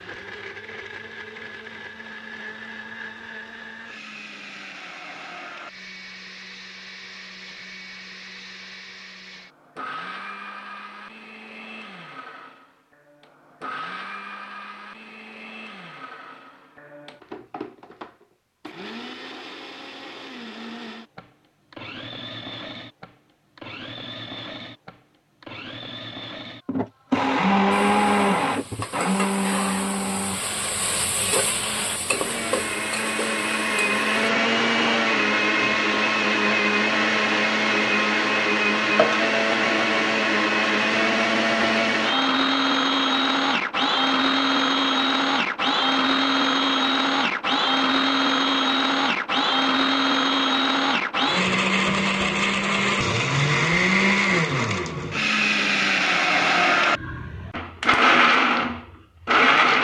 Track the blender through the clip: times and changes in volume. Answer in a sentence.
You can hear the blender from 0.0 to 59.7 s, getting louder.